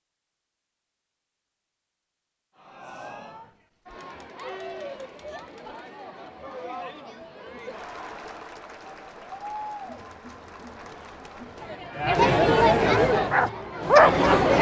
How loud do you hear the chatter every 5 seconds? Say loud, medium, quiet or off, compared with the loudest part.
quiet, quiet, loud.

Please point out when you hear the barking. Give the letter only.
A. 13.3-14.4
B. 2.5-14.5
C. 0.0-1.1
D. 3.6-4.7
A.